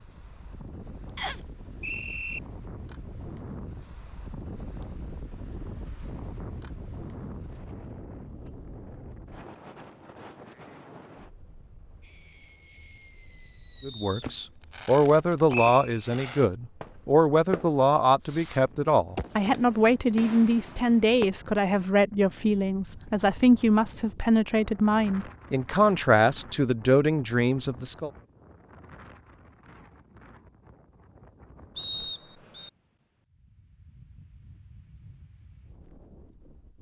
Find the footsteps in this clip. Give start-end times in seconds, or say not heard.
not heard.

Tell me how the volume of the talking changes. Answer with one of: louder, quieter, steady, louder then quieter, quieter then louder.
steady.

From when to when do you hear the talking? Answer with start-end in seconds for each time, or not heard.
13.8-28.1.